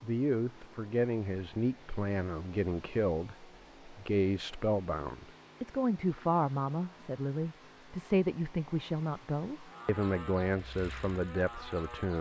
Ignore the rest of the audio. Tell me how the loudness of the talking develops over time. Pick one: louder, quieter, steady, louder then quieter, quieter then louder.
steady.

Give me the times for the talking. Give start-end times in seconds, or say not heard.
0.0-12.1.